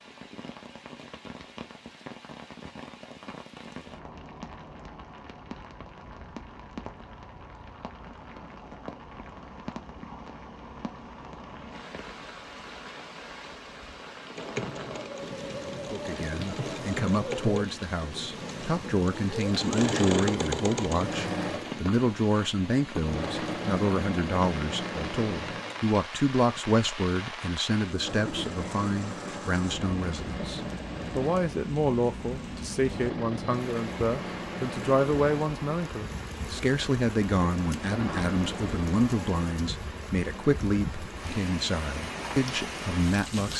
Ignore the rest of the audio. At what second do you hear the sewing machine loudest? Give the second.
20 s.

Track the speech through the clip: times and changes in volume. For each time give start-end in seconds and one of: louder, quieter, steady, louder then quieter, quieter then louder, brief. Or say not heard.
15.9-43.5 steady.